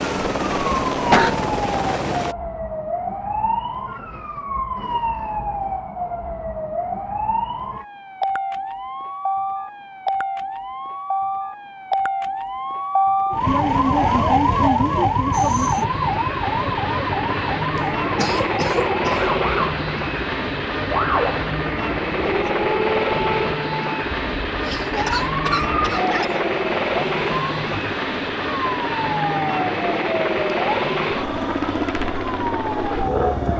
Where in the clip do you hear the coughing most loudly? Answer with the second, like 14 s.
1 s.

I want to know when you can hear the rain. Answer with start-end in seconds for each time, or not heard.
not heard.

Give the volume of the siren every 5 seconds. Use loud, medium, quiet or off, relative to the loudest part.
medium, medium, loud, loud, medium, medium, medium.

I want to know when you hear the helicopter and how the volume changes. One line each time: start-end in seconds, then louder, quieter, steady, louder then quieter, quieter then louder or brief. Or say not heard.
0.0-2.4 brief
15.3-33.5 steady.